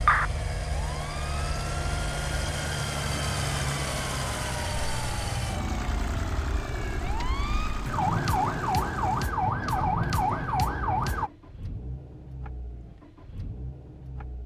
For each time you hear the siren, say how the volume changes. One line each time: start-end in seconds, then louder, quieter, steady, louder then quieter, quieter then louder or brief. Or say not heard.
0.0-11.3 louder.